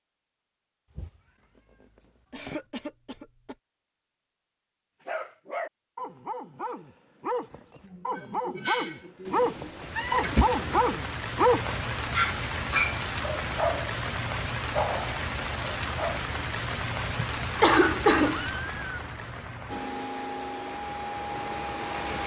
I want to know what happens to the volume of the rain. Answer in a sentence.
The loudness of the rain goes down.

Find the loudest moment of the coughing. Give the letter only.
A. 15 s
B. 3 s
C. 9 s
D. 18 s
D.